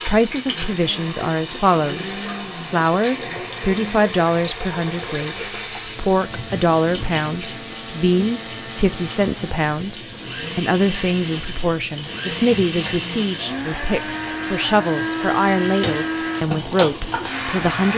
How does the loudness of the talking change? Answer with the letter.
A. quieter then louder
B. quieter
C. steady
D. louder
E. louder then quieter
C.